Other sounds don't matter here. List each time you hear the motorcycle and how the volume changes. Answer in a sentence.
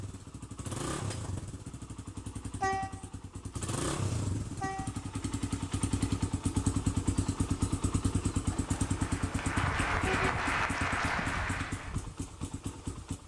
You can hear the motorcycle from 0.0 to 13.2 s, getting louder then quieter.